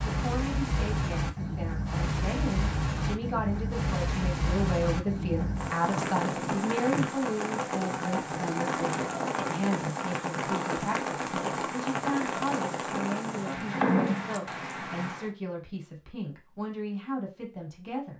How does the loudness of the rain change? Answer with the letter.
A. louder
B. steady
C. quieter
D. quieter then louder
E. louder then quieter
B.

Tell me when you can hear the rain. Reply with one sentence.
The rain can be heard from 0.0 to 15.3 s.